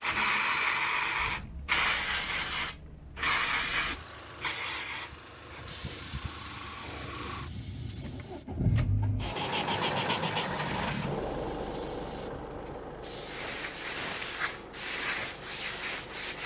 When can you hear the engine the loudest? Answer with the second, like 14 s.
10 s.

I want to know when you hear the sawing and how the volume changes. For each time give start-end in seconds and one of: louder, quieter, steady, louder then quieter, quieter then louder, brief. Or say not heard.
not heard.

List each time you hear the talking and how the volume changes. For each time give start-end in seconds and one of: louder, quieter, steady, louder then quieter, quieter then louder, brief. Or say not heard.
not heard.